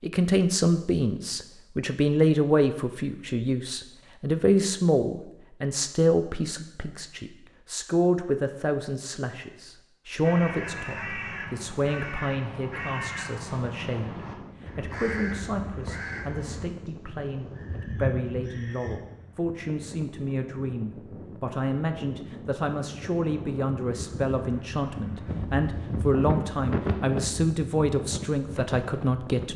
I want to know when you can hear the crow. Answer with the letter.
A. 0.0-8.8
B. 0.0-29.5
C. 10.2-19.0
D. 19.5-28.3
C.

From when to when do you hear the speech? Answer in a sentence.
The speech can be heard from 0.0 to 29.5 s.